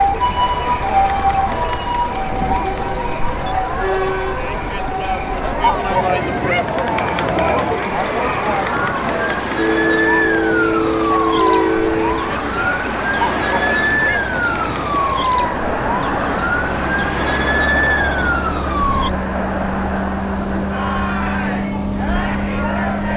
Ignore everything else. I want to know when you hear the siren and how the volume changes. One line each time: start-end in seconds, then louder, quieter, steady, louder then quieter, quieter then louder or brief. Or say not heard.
0.0-19.1 quieter then louder.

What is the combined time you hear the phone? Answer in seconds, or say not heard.
5 s.